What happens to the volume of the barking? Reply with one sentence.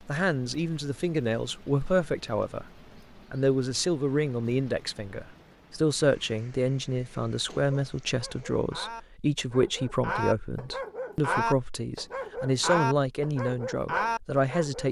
The volume of the barking goes up.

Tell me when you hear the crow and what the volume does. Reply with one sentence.
The crow can't be heard in this clip.